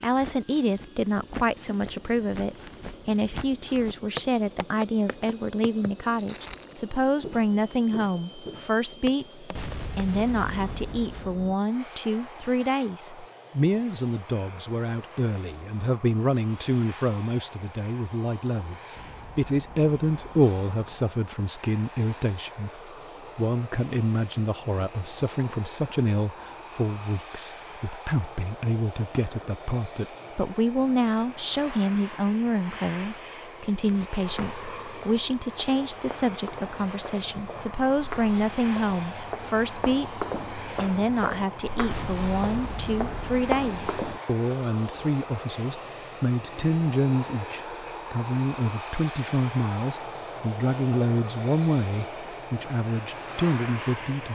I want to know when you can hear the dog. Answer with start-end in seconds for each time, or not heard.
not heard.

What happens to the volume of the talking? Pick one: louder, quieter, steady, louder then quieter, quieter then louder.
steady.